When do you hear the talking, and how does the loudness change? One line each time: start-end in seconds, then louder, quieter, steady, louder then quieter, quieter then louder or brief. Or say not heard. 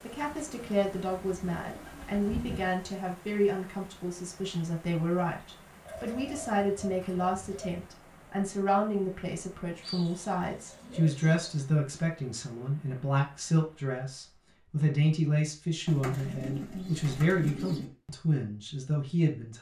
0.0-19.5 steady.